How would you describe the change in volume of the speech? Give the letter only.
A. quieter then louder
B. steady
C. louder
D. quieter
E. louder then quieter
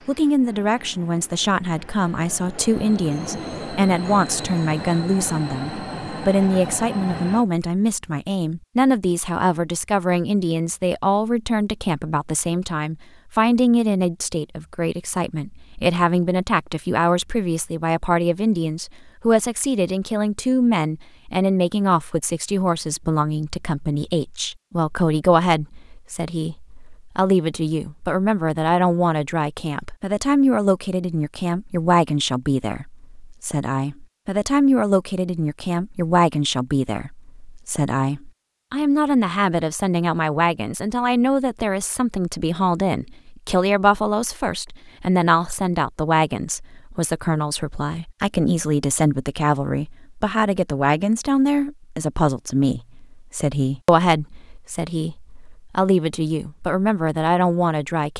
B.